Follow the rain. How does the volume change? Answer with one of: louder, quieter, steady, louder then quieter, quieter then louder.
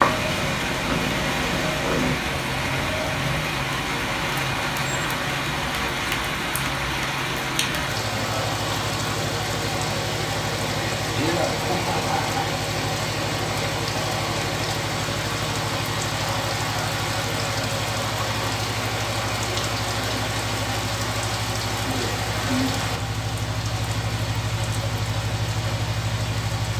steady.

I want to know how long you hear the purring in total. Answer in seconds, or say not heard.
2 s.